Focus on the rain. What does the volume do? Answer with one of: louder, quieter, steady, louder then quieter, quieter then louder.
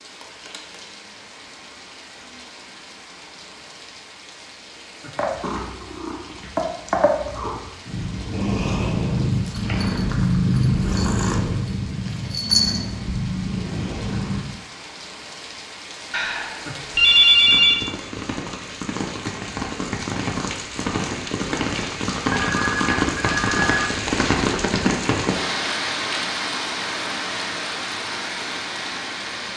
louder.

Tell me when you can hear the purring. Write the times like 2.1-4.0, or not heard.
5.2-14.6.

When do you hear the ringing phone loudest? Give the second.
17 s.